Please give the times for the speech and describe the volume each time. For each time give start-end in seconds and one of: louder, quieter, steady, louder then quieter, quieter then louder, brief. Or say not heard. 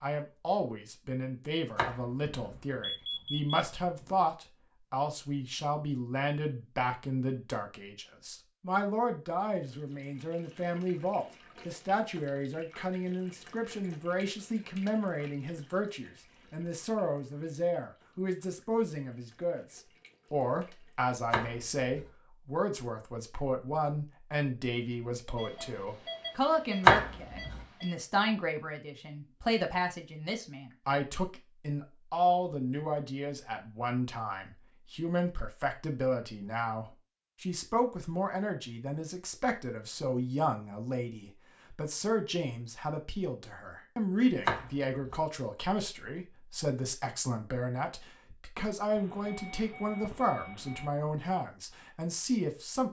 0.0-52.8 steady.